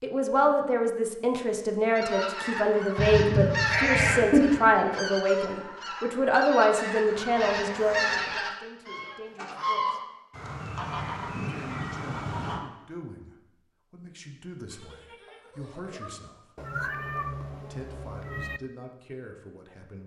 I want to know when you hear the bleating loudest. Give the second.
4 s.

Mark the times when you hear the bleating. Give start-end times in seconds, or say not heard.
3.0-4.6, 7.0-8.3, 14.7-16.2.